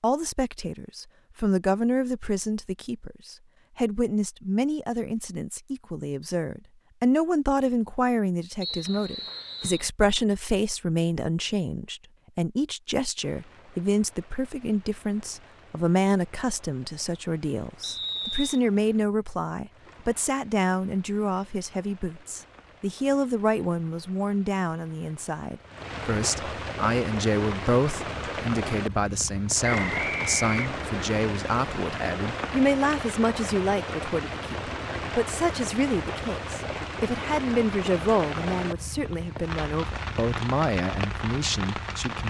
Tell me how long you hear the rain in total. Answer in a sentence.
The rain can be heard for 29 seconds in total.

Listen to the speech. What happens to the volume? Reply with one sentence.
The loudness of the speech stays about the same.